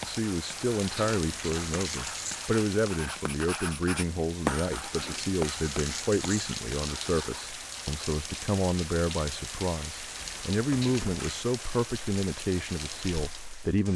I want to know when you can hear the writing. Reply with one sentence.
You can hear the writing from 0.0 to 7.5 s.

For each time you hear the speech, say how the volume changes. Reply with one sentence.
The speech can be heard from 0.0 to 13.9 s, at a steady volume.